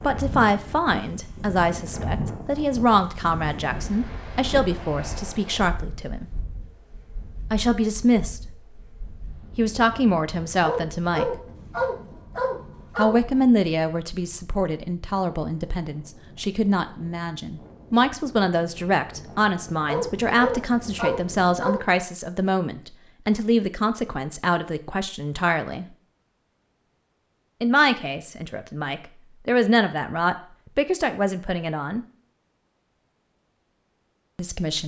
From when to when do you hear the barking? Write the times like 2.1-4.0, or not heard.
10.6-13.2, 19.9-21.8.